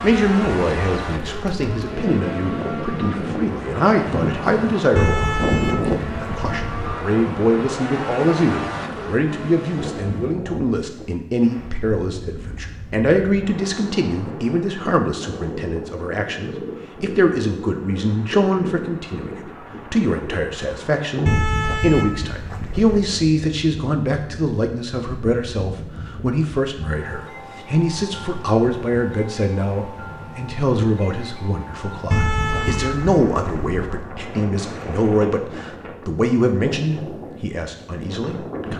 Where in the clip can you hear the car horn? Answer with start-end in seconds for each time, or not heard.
5.0-7.0, 21.2-23.0, 32.1-34.0.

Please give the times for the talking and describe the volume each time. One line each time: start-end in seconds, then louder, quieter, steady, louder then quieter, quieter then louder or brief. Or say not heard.
0.0-38.7 steady.